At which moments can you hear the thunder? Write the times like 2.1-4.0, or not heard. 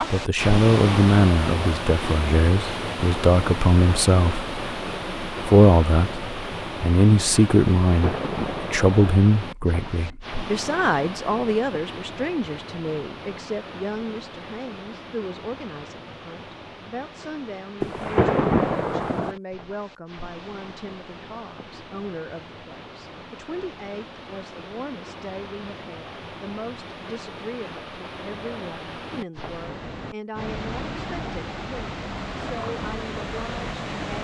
7.8-9.0, 17.8-19.4.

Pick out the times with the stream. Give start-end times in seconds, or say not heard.
0.0-34.1.